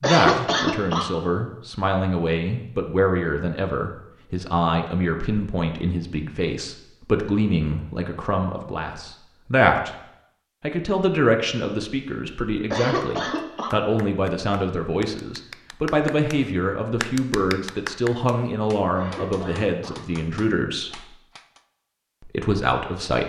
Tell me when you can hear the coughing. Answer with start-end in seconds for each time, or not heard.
0.0-1.1, 12.7-13.7, 18.9-20.0.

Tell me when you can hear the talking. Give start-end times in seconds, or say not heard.
0.0-9.9, 10.6-21.1, 22.2-23.2.